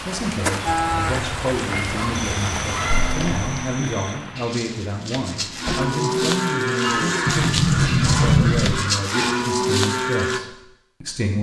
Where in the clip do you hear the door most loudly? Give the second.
8 s.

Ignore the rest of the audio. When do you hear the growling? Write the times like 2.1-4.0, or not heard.
not heard.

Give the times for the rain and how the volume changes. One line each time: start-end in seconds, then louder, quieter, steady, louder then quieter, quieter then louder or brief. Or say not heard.
0.0-5.9 quieter.